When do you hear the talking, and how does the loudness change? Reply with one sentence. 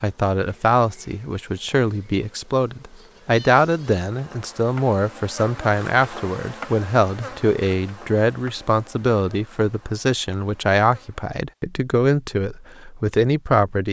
You can hear the talking from 0.0 to 13.8 s, at a steady volume.